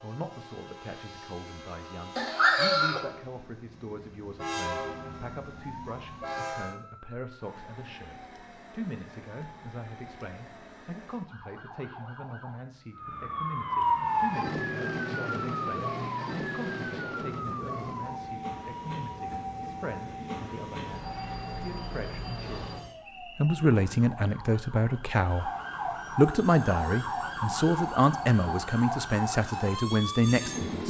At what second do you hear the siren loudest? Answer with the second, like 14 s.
14 s.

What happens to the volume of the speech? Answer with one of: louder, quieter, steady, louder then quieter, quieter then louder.
louder.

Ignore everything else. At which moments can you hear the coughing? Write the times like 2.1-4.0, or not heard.
2.1-3.0.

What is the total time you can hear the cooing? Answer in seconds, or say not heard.
not heard.